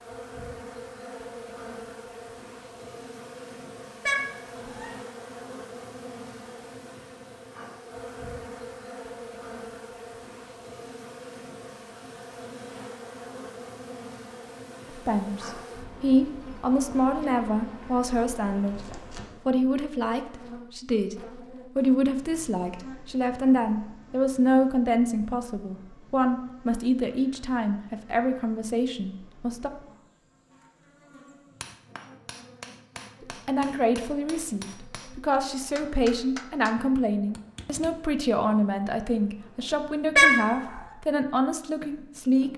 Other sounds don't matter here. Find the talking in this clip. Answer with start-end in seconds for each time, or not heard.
15.1-29.7, 33.2-42.5.